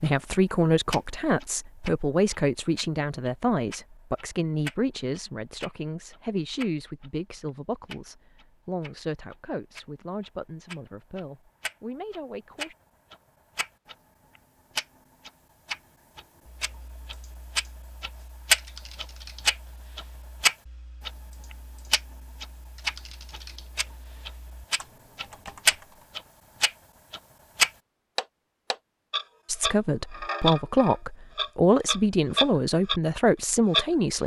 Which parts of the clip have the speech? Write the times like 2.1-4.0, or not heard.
0.0-12.8, 29.4-34.2.